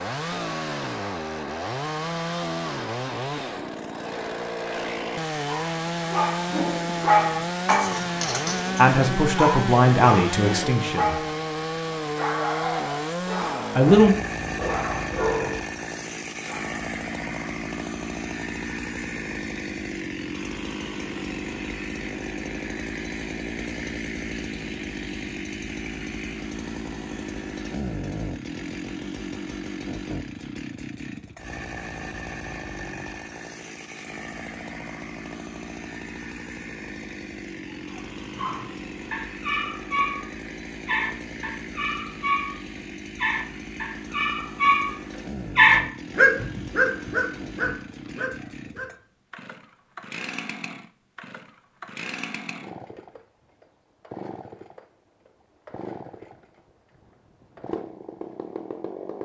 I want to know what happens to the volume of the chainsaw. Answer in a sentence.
The loudness of the chainsaw goes down.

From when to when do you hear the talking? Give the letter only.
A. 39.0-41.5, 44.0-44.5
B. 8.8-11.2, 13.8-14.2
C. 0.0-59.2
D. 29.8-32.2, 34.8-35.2
B.